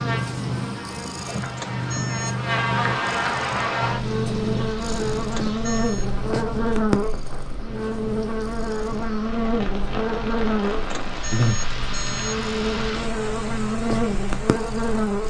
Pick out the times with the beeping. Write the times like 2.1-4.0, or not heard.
1.6-2.4, 5.3-6.0, 10.9-12.4.